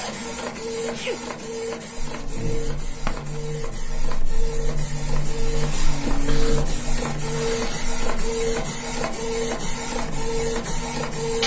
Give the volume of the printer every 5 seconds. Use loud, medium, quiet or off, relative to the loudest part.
medium, loud, loud.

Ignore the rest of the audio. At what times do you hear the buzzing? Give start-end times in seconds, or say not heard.
1.9-11.4.